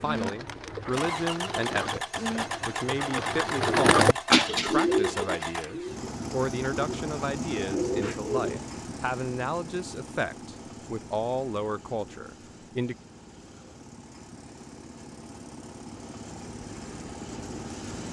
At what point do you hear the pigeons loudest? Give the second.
4 s.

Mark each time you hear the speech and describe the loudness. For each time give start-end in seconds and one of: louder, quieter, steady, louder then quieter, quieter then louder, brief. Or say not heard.
0.0-12.9 steady.